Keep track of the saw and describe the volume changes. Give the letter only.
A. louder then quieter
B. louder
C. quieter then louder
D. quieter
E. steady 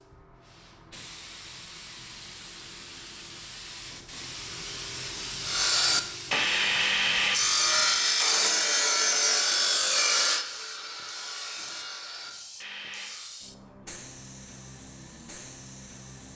D.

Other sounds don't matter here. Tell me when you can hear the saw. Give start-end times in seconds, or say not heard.
5.4-13.3.